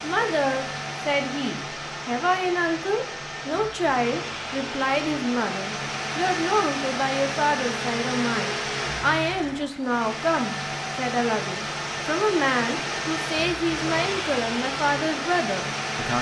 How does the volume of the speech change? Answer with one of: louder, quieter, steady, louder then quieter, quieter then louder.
steady.